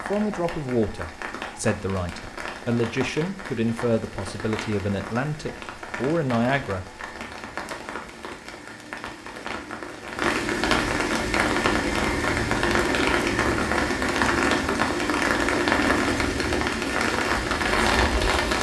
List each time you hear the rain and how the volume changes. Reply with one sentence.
The rain can be heard from 0.0 to 18.5 s, getting louder.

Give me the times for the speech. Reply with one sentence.
You can hear the speech from 0.0 to 7.0 s.